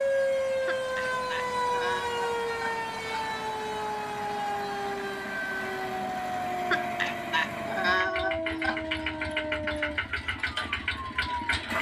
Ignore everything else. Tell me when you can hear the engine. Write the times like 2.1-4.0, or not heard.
0.0-11.7.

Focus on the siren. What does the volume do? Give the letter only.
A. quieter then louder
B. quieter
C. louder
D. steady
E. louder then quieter
B.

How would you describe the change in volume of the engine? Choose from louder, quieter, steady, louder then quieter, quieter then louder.
louder.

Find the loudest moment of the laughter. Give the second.
8 s.